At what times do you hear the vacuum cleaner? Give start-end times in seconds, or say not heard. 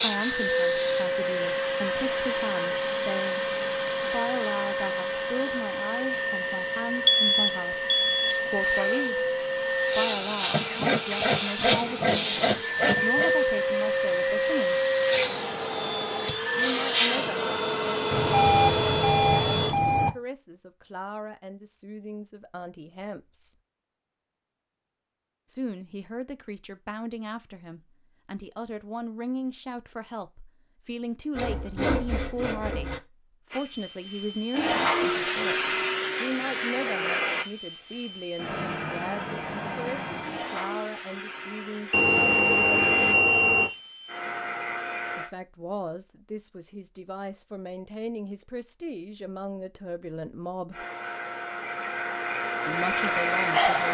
0.0-19.8, 33.5-45.3, 50.7-53.8.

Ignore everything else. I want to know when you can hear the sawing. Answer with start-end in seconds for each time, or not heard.
10.5-13.3, 31.4-33.0.